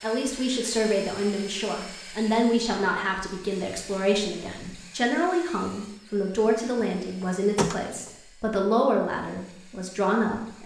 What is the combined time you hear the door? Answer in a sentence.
The door can be heard for 2 seconds in total.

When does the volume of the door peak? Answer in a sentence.
The loudest moment of the door is at 8 seconds.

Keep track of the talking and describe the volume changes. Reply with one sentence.
The loudness of the talking stays about the same.